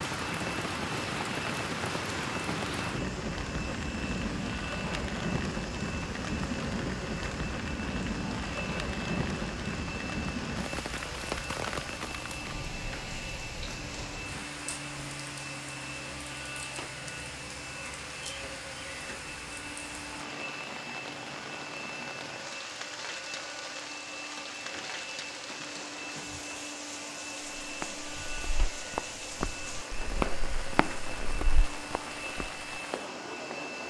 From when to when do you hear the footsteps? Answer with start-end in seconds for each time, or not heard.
27.6-33.6.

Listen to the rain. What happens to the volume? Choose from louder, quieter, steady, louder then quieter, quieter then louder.
quieter.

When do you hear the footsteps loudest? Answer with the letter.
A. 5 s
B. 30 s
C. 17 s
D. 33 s
B.